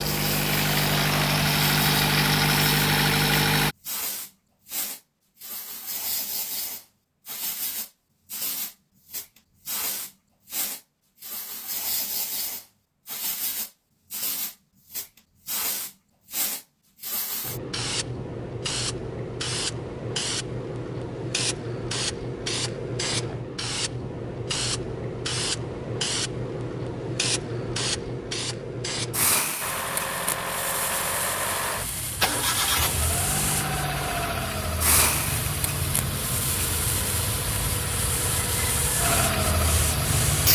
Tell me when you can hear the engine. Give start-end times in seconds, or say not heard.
0.0-3.8, 29.6-40.5.